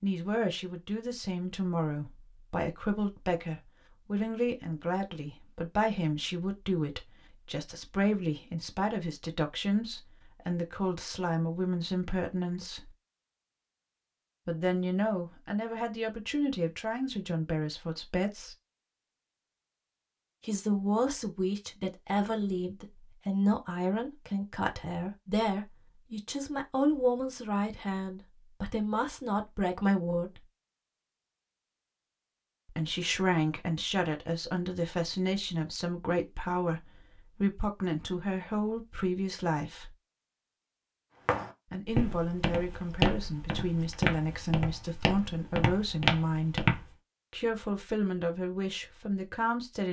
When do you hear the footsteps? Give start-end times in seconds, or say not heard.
41.2-46.9.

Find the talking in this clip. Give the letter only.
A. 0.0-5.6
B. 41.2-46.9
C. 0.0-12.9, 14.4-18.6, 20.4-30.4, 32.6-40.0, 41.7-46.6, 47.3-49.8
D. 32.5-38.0
C.